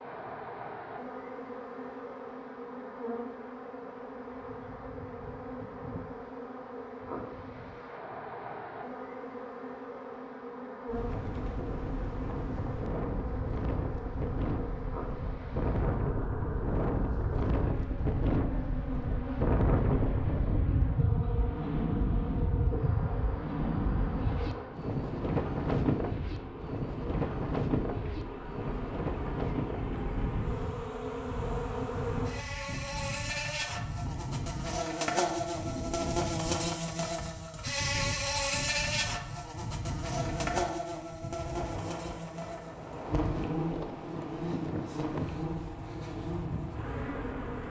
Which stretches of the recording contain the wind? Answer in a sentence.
The wind can be heard from 10.8 to 47.6 s.